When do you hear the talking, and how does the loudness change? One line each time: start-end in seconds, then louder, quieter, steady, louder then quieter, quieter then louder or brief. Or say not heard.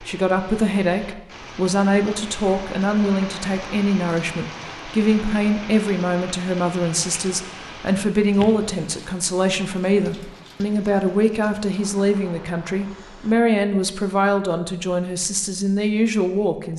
0.0-16.7 steady.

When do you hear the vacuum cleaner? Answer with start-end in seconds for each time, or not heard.
not heard.